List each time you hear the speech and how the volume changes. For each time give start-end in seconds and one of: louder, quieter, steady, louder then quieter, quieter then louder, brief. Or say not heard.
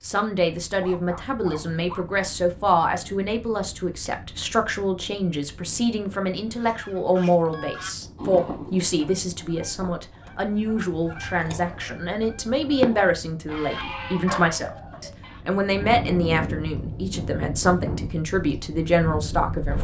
0.0-19.7 steady.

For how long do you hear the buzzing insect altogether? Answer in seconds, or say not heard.
not heard.